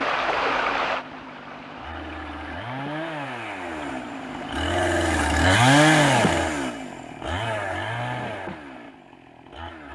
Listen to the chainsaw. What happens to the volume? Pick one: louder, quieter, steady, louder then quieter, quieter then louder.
louder then quieter.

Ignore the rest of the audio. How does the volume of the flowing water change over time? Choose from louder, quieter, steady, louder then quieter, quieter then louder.
quieter.